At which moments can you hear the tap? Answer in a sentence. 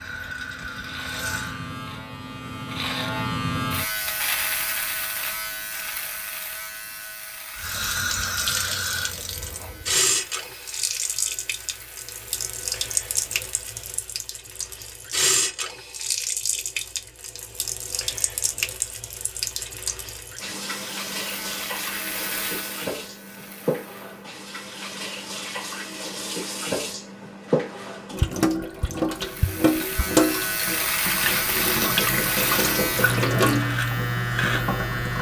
You can hear the tap from 0.0 to 1.8 s and from 7.5 to 35.1 s.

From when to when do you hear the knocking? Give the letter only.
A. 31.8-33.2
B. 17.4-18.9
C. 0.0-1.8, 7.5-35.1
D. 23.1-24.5
A.